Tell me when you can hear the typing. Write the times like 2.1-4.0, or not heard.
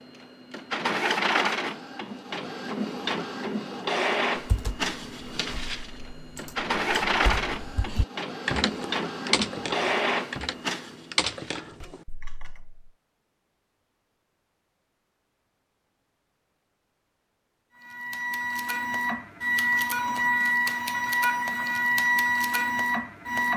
4.3-12.9.